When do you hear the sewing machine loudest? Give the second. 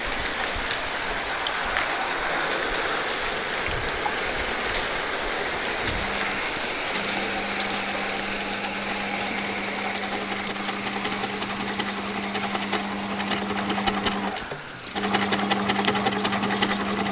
16 s.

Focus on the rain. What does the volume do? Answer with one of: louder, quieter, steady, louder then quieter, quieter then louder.
quieter.